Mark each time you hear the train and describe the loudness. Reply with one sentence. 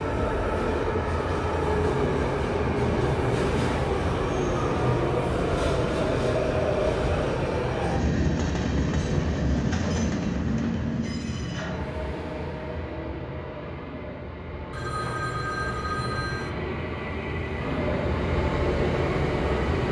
The train can be heard from 0.0 to 19.8 s, getting quieter then louder.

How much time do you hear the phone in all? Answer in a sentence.
You can hear the phone for 2 seconds altogether.